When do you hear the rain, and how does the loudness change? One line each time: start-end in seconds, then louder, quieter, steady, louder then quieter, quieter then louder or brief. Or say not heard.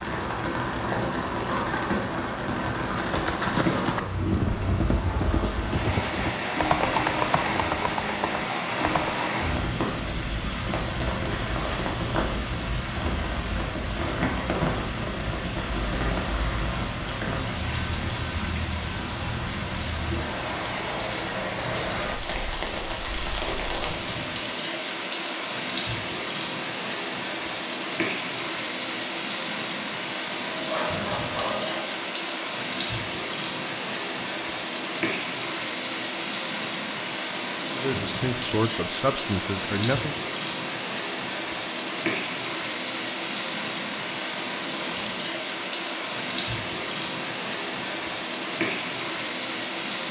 0.0-50.0 steady.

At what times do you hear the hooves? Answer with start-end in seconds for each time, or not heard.
2.9-9.3.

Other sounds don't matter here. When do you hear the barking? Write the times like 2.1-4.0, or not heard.
30.5-32.0.